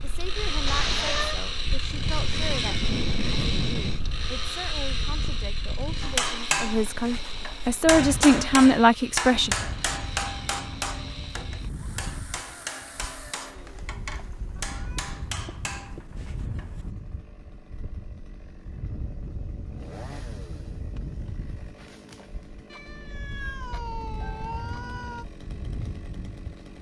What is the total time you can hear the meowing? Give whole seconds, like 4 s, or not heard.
5 s.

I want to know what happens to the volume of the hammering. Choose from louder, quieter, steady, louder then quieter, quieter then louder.
quieter.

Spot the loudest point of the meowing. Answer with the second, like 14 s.
1 s.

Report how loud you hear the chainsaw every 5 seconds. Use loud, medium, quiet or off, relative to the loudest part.
loud, medium, quiet, quiet, quiet, quiet.